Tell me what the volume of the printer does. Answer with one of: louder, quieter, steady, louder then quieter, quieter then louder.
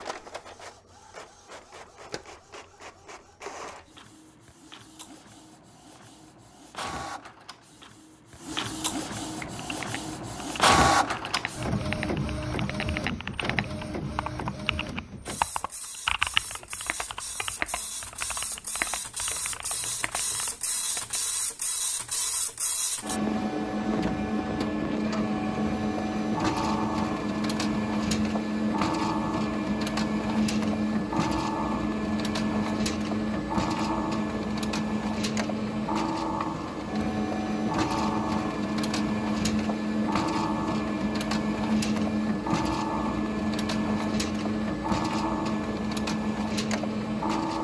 louder.